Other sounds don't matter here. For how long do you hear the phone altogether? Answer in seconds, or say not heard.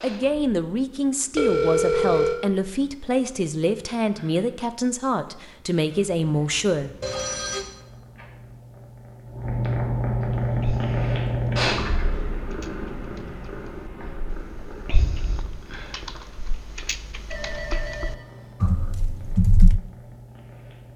3 s.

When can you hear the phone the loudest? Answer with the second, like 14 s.
2 s.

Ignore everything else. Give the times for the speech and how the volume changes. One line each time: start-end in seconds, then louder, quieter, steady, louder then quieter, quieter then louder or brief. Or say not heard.
0.0-7.0 steady.